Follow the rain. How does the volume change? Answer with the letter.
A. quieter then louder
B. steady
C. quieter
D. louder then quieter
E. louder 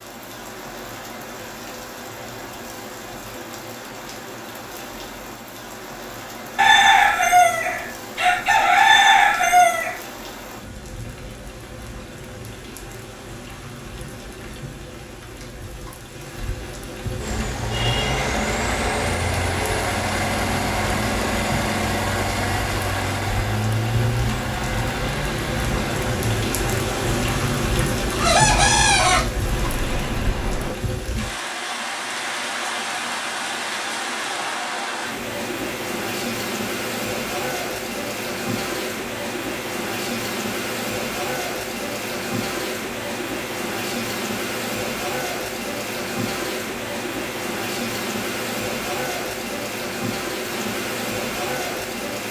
E.